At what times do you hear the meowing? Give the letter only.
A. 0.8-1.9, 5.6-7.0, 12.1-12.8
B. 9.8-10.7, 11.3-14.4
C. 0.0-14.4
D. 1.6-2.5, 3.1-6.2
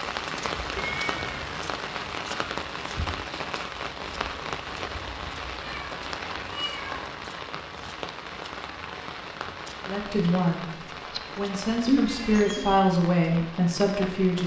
A.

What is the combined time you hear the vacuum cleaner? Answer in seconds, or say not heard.
not heard.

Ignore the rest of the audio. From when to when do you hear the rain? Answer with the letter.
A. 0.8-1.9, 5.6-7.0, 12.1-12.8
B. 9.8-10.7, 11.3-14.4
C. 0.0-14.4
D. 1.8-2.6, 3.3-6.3
C.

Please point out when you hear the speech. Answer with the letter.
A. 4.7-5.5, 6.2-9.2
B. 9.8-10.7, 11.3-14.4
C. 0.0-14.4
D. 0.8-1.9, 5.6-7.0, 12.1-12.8
B.